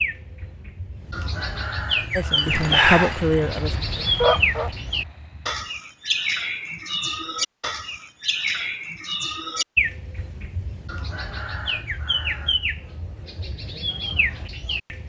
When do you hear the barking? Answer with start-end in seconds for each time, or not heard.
2.1-4.7.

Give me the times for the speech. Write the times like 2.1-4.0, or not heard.
2.1-3.8.